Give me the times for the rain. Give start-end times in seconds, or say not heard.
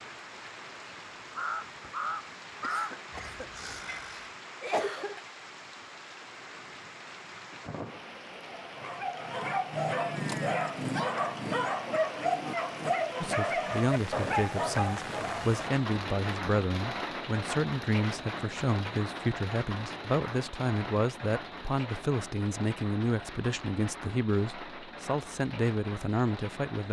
0.0-26.8.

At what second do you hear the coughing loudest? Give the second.
5 s.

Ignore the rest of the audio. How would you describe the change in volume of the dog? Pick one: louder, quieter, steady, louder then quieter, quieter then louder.
steady.